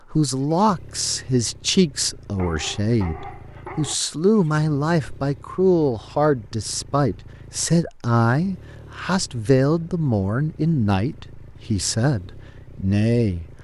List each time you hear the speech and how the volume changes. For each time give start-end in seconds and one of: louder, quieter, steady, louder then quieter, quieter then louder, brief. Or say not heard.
0.1-13.4 steady.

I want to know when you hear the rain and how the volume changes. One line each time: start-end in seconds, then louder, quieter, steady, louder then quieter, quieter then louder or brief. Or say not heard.
not heard.